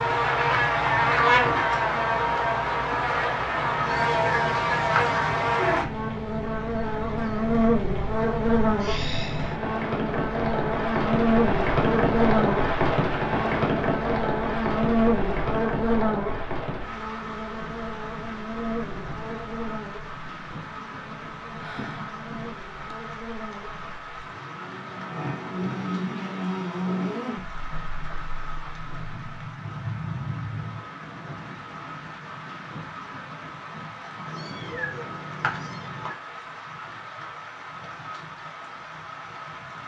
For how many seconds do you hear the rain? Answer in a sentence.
You can hear the rain for 40 seconds altogether.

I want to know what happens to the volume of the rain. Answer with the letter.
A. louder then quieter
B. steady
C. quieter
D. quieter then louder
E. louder
A.